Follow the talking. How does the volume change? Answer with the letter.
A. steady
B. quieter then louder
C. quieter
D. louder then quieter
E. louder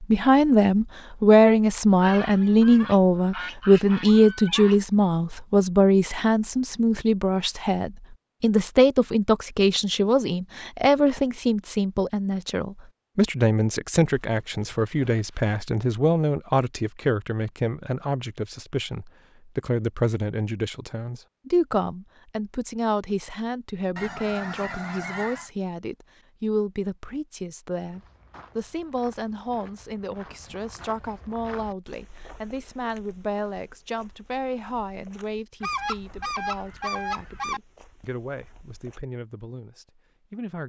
C.